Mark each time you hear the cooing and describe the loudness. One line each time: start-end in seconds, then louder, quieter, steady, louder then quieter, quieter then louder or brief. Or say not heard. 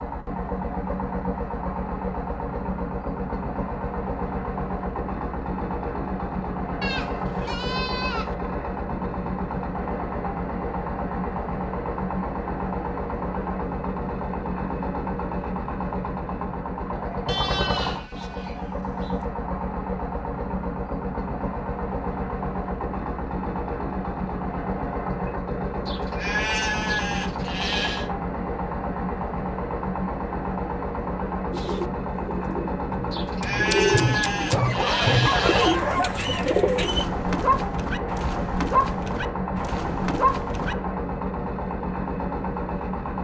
31.5-37.0 louder.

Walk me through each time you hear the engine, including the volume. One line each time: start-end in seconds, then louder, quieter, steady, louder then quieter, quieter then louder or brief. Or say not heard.
0.0-43.1 steady.